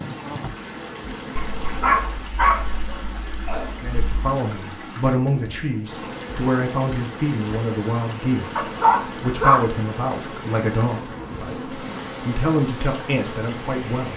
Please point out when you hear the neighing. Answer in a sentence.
The neighing can't be heard in this clip.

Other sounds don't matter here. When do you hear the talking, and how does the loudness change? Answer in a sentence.
You can hear the talking from 3.8 to 14.1 s, at a steady volume.